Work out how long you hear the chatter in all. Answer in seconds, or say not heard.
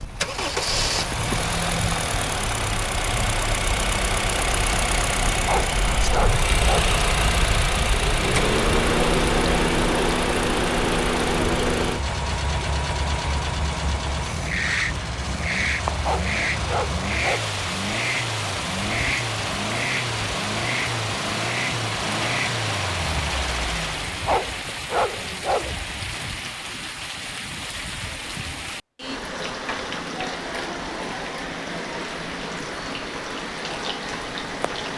not heard.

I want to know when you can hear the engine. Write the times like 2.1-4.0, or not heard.
0.0-24.2.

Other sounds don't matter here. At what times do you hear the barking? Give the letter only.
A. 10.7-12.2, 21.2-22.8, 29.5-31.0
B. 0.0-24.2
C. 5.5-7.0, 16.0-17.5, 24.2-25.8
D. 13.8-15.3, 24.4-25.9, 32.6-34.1
C.